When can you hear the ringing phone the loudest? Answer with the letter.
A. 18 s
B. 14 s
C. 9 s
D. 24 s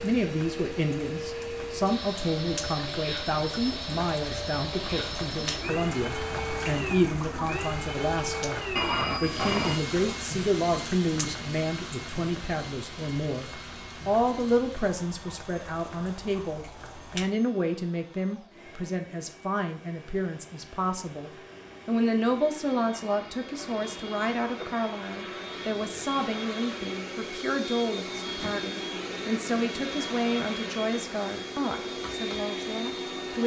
C.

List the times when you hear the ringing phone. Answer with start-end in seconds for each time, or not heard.
8.8-9.8, 22.9-24.8.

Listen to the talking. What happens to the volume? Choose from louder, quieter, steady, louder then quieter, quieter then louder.
steady.